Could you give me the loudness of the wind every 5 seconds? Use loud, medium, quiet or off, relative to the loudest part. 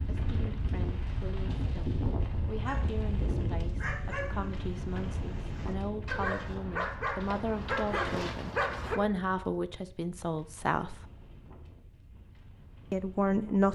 loud, medium, quiet.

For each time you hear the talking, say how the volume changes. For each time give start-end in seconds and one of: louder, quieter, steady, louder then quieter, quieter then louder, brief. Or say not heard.
0.0-11.0 louder
12.9-13.6 brief.